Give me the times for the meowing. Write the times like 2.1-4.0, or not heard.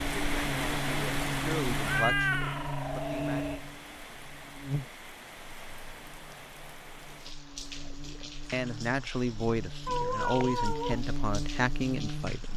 1.8-3.6, 9.8-11.0.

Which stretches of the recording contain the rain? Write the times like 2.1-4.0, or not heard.
0.0-12.5.